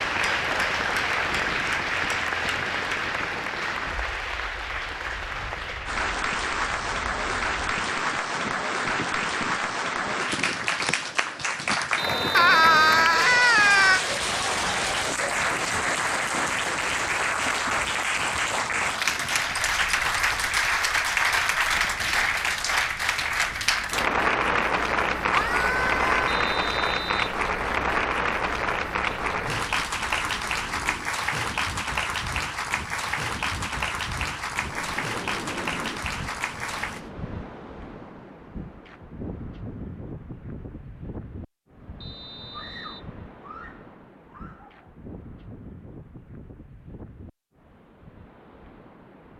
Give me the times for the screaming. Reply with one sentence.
The screaming can be heard from 12.3 to 14.0 s, from 25.3 to 26.4 s and from 42.5 to 44.8 s.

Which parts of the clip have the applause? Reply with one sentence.
You can hear the applause from 0.0 to 37.1 s.